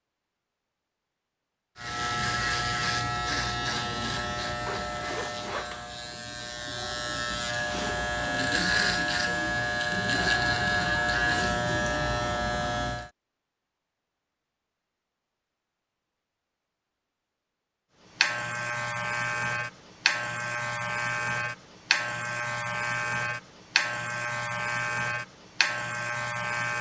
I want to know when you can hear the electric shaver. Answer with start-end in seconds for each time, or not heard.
1.8-13.1, 18.1-26.7.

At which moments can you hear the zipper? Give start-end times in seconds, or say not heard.
4.7-5.8.